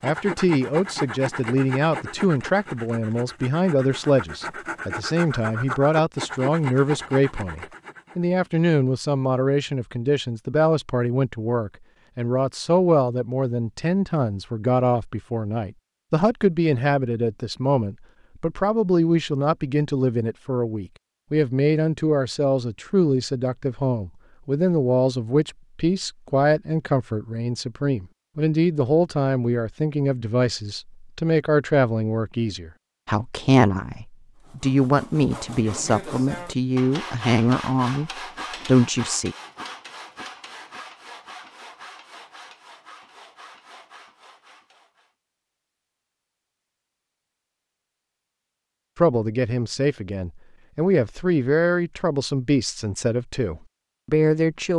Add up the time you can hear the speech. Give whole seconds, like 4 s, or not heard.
45 s.